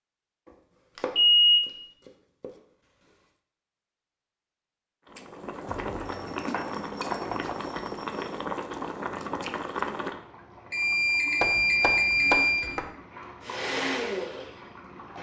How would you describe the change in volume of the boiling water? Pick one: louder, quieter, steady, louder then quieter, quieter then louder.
quieter.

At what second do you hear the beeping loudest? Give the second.
1 s.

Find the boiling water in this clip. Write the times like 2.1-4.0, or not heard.
5.0-15.1.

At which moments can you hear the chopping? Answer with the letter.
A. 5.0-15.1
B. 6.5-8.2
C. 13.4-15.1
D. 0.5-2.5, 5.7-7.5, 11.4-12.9
D.